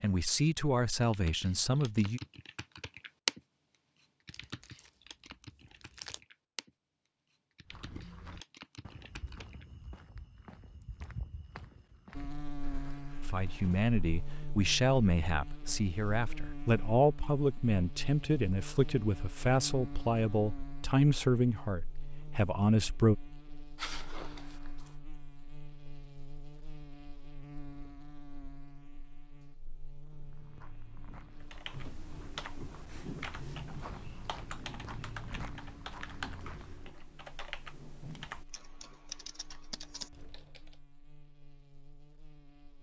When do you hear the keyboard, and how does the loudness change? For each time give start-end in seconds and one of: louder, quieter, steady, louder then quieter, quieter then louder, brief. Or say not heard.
1.0-3.4 brief
4.0-6.7 brief
7.3-9.7 brief
31.4-40.8 steady.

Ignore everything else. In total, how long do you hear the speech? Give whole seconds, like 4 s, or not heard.
12 s.